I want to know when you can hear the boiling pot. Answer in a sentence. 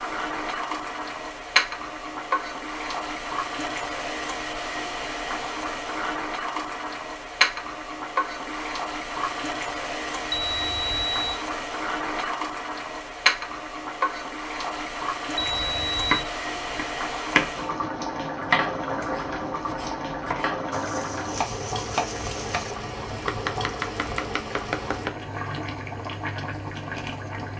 You can hear the boiling pot from 0.0 to 27.5 s.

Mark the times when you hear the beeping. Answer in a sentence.
The beeping can be heard from 10.3 to 11.4 s and from 15.6 to 16.2 s.